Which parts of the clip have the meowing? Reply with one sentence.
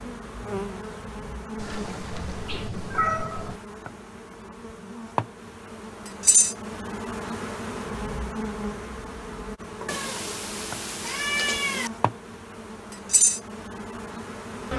The meowing can be heard from 1.6 to 3.6 s and from 9.8 to 11.9 s.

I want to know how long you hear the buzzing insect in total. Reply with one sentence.
You can hear the buzzing insect for 15 seconds altogether.